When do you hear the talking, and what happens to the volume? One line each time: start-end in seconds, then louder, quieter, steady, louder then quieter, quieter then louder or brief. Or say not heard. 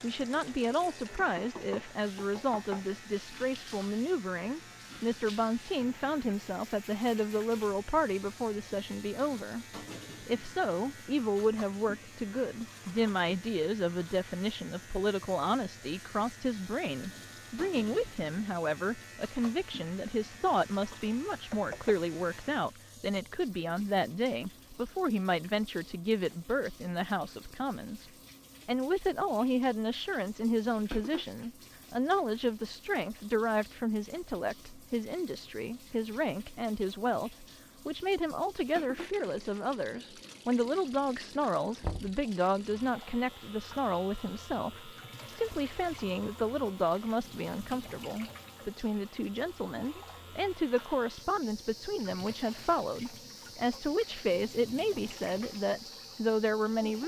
0.0-57.0 steady.